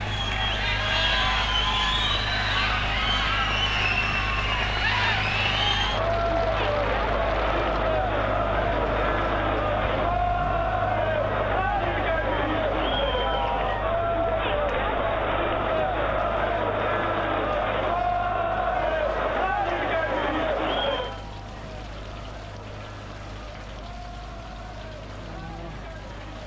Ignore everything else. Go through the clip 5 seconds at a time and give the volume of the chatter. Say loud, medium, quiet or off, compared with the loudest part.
loud, loud, loud, loud, medium, quiet.